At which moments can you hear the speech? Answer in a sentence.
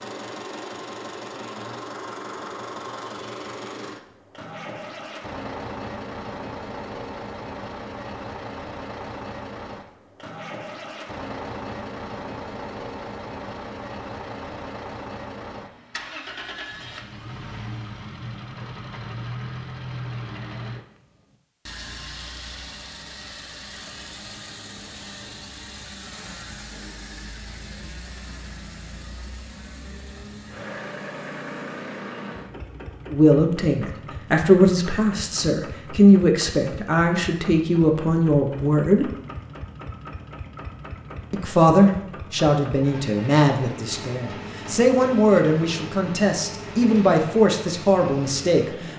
The speech can be heard from 33.1 to 39.1 s and from 41.3 to 48.9 s.